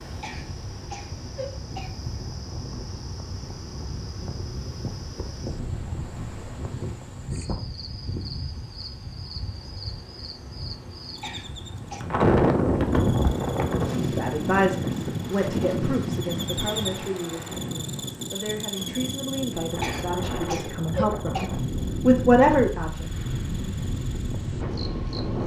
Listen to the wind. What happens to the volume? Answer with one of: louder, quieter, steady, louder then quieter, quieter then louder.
louder then quieter.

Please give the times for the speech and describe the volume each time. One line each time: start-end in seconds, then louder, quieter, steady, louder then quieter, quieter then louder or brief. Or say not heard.
13.9-23.1 quieter then louder.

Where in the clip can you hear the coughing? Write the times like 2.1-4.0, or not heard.
0.2-1.9, 11.2-12.1, 19.8-21.5.